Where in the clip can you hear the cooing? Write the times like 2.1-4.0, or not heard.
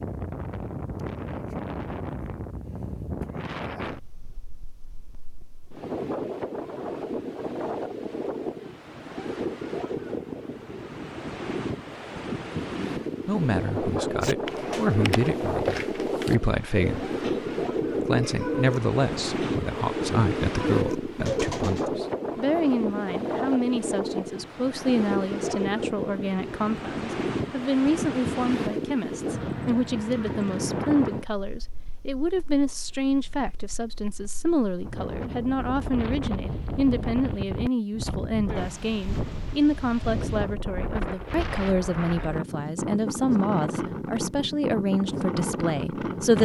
14.2-21.9.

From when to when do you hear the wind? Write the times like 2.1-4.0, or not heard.
0.0-46.3.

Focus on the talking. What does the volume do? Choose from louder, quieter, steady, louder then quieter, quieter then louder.
steady.